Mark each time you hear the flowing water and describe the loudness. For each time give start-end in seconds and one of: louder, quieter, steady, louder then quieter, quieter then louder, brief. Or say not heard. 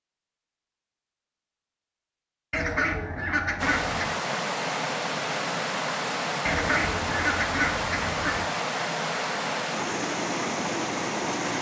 3.5-11.5 steady.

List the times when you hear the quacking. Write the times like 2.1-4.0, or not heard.
2.5-4.2, 6.5-8.4.